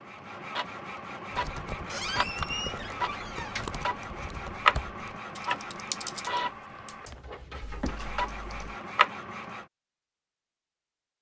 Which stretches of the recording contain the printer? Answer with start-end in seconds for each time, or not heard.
0.0-9.7.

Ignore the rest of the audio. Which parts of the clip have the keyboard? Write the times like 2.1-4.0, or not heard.
1.3-8.8.